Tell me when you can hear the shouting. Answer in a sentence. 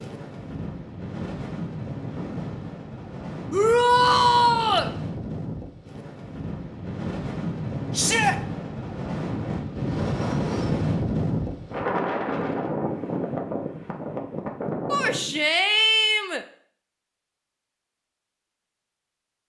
You can hear the shouting from 3.5 to 4.9 s, from 7.9 to 8.3 s and from 14.9 to 16.4 s.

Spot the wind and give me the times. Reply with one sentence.
You can hear the wind from 0.0 to 15.4 s.